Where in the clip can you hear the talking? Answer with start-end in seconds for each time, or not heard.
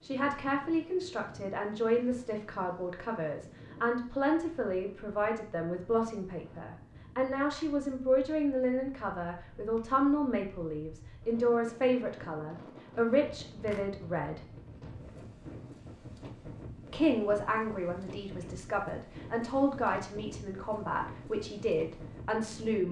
0.0-14.4, 16.9-22.8.